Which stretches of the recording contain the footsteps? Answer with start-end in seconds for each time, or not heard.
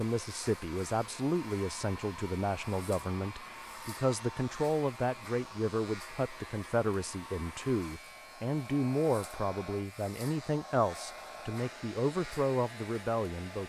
not heard.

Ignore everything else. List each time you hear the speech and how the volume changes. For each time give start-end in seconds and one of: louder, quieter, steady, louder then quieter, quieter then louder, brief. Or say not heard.
0.0-13.6 steady.